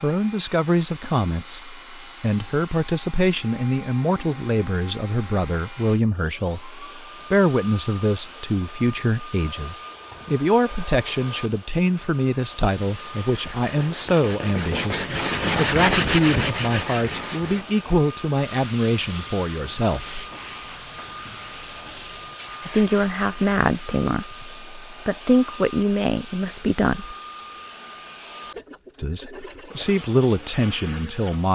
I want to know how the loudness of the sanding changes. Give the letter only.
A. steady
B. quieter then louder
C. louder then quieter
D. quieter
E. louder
C.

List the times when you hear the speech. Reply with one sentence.
The speech can be heard from 0.0 to 20.2 s, from 22.6 to 27.1 s and from 28.9 to 31.5 s.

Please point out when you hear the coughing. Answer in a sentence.
The coughing can't be heard in this clip.